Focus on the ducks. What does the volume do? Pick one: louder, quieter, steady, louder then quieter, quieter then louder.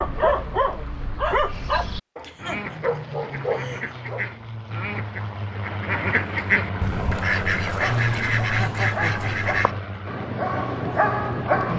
louder.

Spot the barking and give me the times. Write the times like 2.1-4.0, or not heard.
0.0-4.2, 7.8-11.7.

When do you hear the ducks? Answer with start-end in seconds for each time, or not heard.
1.4-9.7.